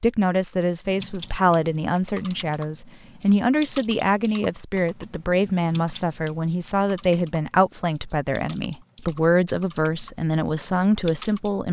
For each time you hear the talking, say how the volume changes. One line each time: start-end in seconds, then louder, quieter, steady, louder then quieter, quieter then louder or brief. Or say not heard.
0.0-11.6 steady.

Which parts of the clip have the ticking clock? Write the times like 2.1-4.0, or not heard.
not heard.